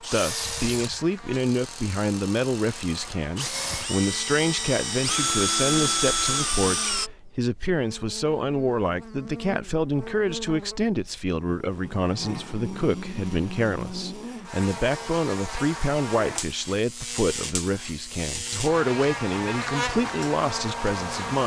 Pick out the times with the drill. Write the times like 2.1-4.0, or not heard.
0.0-7.1.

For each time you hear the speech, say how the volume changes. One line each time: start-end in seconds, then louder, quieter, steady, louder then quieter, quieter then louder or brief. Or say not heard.
0.1-21.4 steady.